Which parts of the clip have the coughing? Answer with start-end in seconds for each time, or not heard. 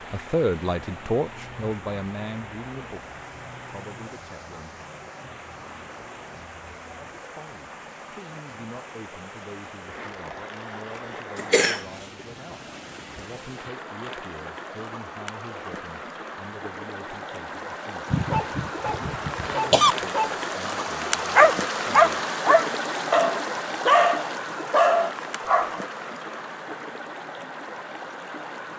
11.3-11.8, 18.1-19.9.